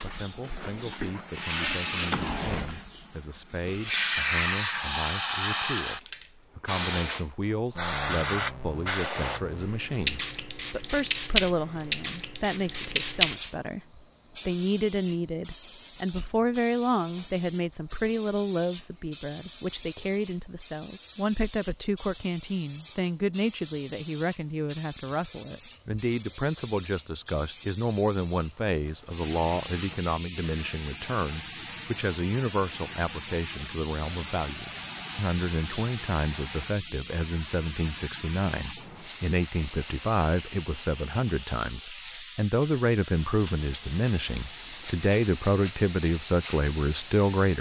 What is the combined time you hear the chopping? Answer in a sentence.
The chopping can't be heard in this clip.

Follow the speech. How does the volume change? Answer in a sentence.
The loudness of the speech goes up.